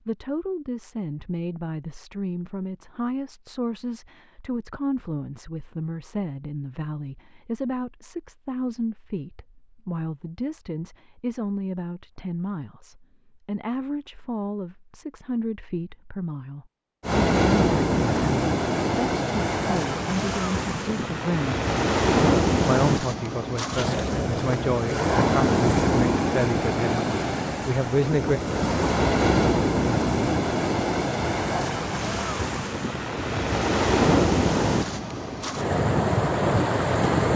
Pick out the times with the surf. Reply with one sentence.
The surf can be heard from 17.0 to 37.3 s.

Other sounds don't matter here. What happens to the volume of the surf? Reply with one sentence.
The loudness of the surf stays about the same.